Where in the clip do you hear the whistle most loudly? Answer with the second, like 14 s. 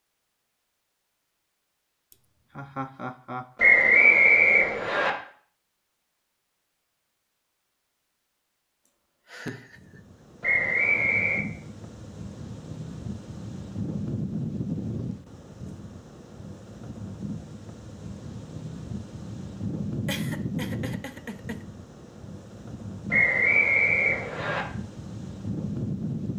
4 s.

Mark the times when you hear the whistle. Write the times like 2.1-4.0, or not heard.
3.5-5.1, 10.4-11.4, 23.1-24.6.